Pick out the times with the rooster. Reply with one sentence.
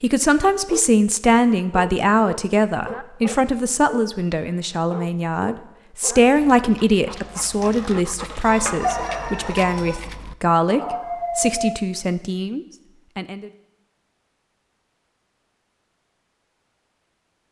The rooster can be heard from 8.4 to 9.9 s.